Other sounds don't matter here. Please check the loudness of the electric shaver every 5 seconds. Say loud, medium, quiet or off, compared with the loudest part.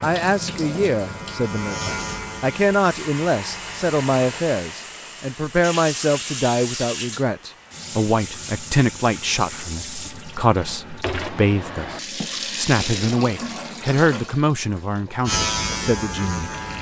medium, off, off, loud.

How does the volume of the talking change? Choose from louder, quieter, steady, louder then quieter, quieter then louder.
steady.